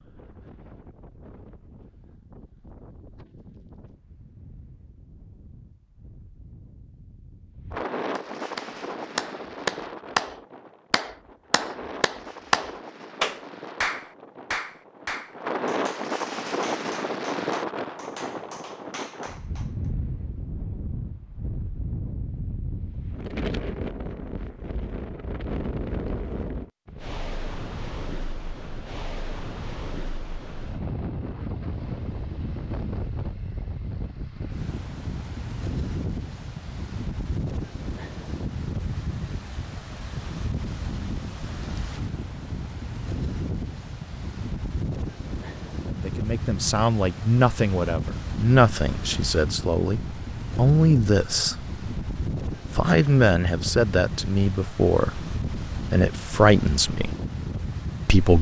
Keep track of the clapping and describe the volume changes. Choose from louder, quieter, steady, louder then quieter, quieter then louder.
quieter.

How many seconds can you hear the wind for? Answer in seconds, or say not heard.
58 s.